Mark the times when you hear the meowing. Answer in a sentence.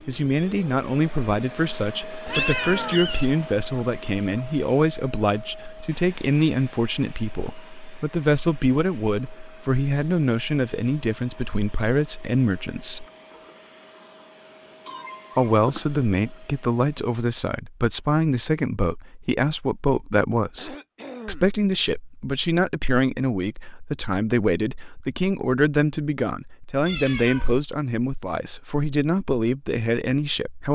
You can hear the meowing from 2.2 to 3.4 s, from 14.8 to 16.0 s and from 26.9 to 27.8 s.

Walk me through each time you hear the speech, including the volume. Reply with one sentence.
You can hear the speech from 0.1 to 13.1 s, at a steady volume; and from 15.3 to 30.7 s, at a steady volume.